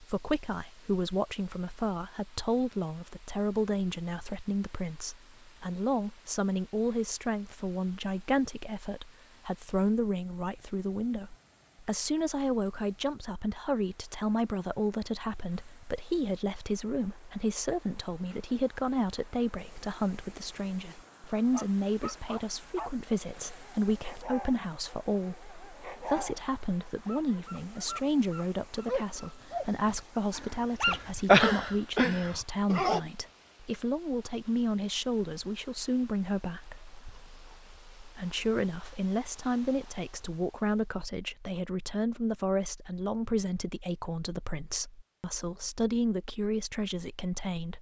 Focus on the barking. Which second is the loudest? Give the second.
31 s.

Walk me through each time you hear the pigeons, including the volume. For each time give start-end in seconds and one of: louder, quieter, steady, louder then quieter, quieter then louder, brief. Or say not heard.
not heard.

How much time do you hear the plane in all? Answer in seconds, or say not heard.
not heard.